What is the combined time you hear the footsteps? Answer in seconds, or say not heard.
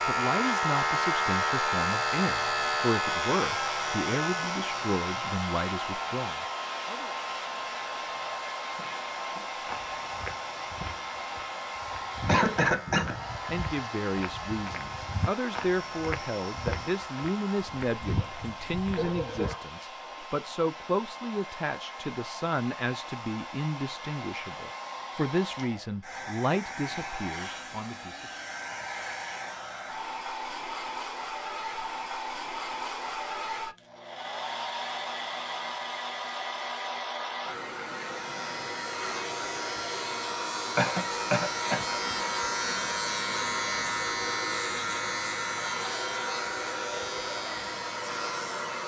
11 s.